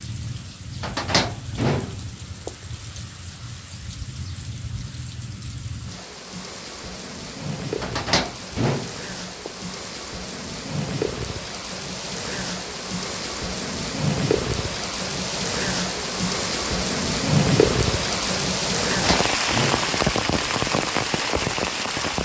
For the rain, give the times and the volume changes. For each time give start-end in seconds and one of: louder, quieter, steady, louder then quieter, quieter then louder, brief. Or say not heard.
0.0-22.2 louder.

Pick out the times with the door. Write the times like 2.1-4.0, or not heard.
0.8-2.5, 7.8-9.5, 18.8-20.4.